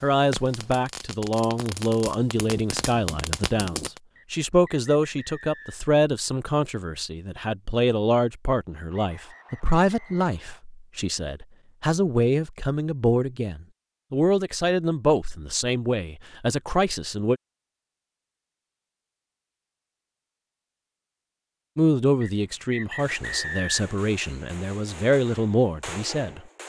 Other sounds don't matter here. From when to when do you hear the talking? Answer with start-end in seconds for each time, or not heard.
0.0-17.4, 21.8-26.4.